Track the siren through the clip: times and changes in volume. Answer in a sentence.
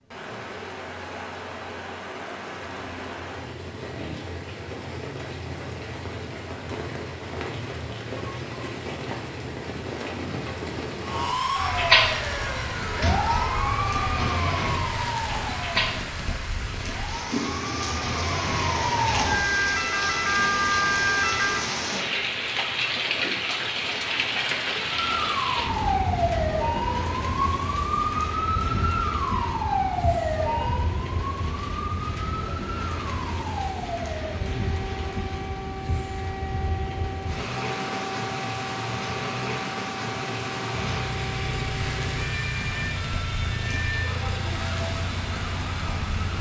The siren can be heard from 11.0 to 21.7 s, getting quieter then louder; and from 24.8 to 46.3 s, getting quieter.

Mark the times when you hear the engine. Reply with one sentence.
The engine can be heard from 40.9 to 46.3 s.